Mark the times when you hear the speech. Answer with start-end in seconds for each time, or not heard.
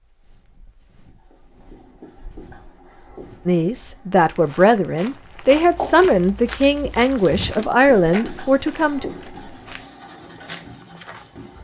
3.5-9.1.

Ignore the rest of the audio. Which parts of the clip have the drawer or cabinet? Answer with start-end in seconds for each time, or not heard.
not heard.